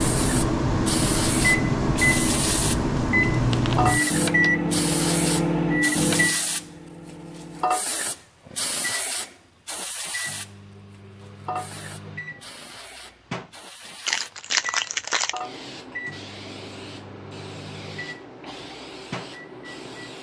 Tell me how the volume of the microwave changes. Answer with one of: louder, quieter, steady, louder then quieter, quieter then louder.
quieter.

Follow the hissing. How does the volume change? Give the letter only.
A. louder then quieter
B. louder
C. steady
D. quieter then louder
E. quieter
E.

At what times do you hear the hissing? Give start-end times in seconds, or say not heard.
0.0-20.1.